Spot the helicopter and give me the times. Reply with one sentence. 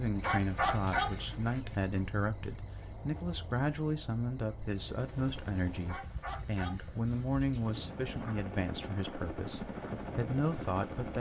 The helicopter can be heard from 4.8 to 11.1 s.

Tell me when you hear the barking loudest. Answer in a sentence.
The volume of the barking peaks at 1 second.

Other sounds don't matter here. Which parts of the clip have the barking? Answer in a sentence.
The barking can be heard from 0.2 to 1.6 s and from 5.8 to 7.8 s.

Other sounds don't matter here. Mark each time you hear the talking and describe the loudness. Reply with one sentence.
You can hear the talking from 0.0 to 11.1 s, at a steady volume.